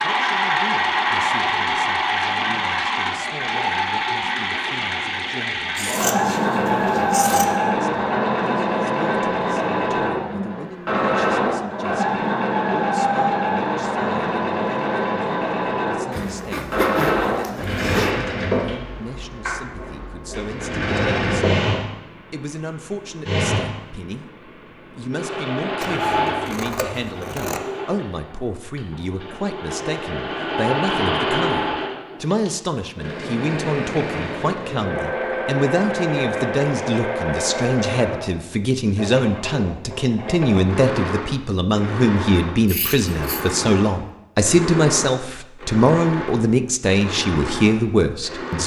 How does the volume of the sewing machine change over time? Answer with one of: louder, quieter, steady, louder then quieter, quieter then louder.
quieter.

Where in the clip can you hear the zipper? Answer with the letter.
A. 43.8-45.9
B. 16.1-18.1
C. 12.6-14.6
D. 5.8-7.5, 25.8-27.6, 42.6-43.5
B.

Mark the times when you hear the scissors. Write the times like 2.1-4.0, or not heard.
5.8-7.5, 25.8-27.6, 42.6-43.5.